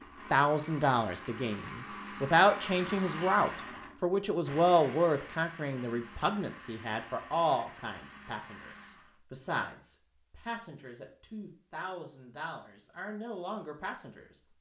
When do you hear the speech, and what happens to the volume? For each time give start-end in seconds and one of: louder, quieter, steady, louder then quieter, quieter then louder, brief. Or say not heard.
0.3-14.2 quieter.